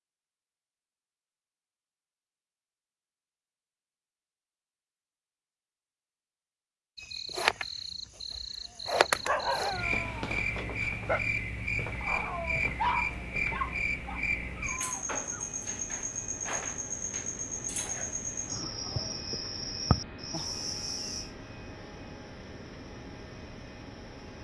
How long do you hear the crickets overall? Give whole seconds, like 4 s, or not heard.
17 s.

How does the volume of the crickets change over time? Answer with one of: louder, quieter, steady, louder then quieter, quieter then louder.
quieter.